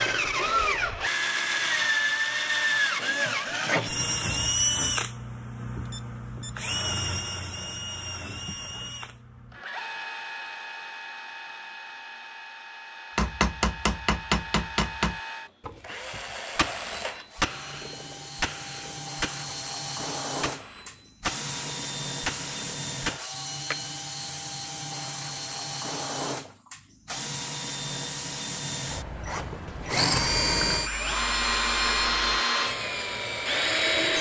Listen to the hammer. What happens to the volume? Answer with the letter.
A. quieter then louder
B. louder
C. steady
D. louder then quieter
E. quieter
E.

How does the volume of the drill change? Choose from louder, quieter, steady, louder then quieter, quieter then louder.
quieter then louder.